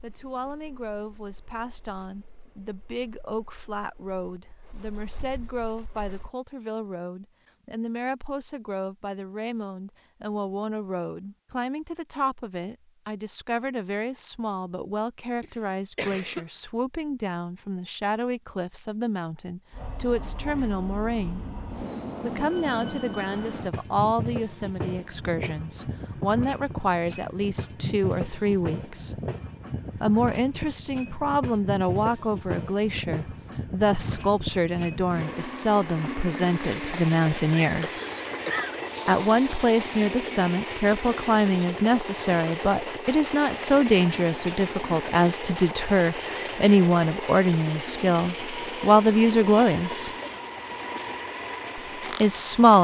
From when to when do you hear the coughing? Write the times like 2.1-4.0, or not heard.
15.4-16.4, 37.6-38.8.